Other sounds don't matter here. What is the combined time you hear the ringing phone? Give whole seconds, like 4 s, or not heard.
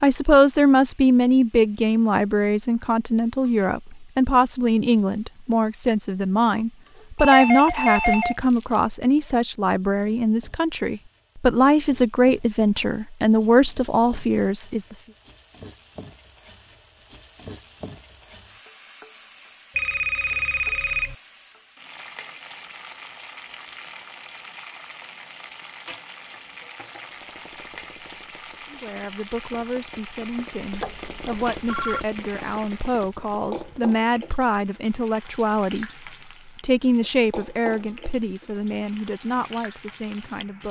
4 s.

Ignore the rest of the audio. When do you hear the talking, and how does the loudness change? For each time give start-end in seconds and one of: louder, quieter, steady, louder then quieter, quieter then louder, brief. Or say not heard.
0.0-14.9 steady
28.7-40.6 louder then quieter.